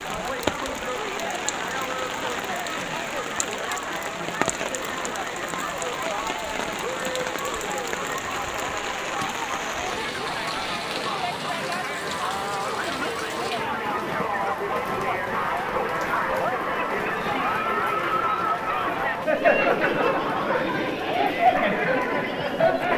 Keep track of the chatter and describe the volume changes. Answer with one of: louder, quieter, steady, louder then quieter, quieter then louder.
louder.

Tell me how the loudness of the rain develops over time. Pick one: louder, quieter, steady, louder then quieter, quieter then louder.
quieter.